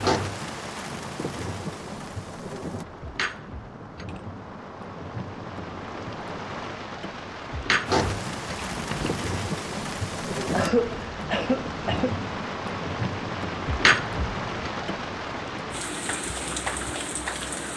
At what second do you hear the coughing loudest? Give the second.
11 s.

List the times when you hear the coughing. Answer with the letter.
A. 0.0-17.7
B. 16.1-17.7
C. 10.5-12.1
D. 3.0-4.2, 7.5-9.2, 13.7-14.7
C.